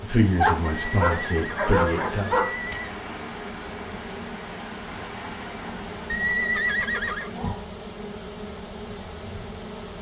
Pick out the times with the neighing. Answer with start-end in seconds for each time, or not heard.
0.7-2.9, 6.1-7.3.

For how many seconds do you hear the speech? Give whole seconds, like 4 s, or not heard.
2 s.